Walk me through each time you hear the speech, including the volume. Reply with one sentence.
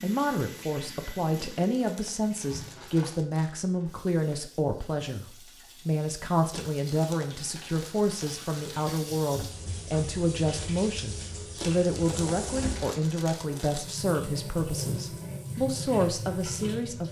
You can hear the speech from 0.0 to 17.0 s, at a steady volume.